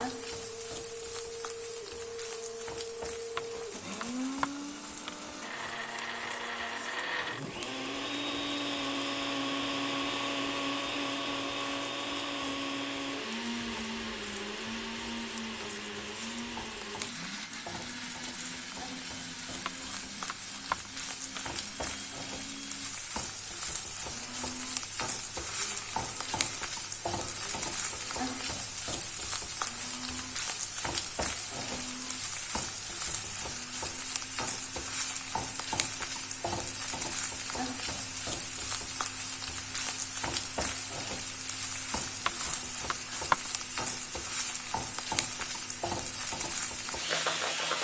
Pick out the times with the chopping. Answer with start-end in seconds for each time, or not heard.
3.4-5.2, 19.6-21.4, 42.2-43.5.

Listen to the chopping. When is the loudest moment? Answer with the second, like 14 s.
43 s.